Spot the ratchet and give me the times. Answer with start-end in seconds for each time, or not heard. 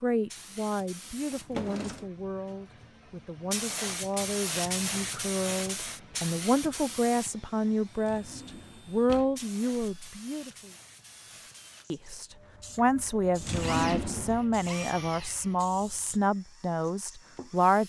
not heard.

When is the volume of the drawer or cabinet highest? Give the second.
14 s.